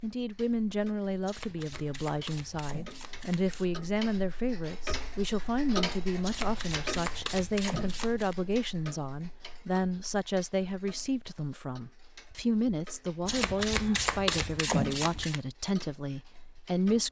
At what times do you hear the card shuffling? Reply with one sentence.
The card shuffling can be heard from 1.2 to 3.7 s, from 6.2 to 8.3 s and from 13.2 to 15.4 s.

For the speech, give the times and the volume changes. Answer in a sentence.
You can hear the speech from 0.0 to 17.0 s, at a steady volume.